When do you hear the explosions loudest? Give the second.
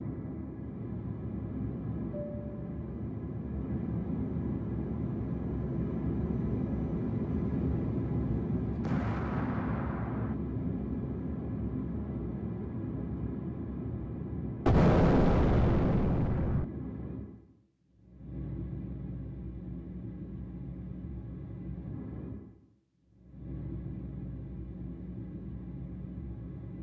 15 s.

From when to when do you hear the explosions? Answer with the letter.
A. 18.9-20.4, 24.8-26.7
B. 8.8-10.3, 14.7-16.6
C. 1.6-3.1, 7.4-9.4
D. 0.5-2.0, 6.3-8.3
B.